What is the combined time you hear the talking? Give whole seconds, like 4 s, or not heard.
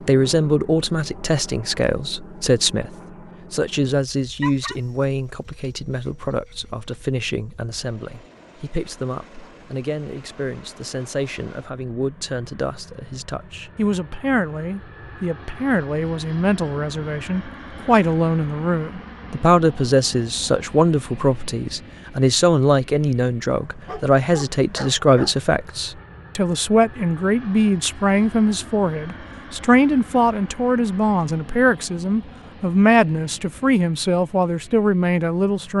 36 s.